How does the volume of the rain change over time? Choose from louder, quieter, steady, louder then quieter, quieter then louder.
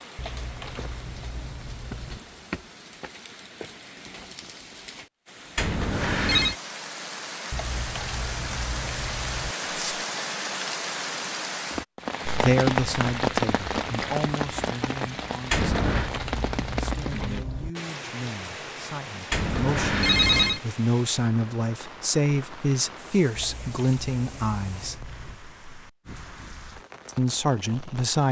louder then quieter.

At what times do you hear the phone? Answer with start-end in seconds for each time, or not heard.
5.5-6.5, 15.5-16.1, 19.3-20.6.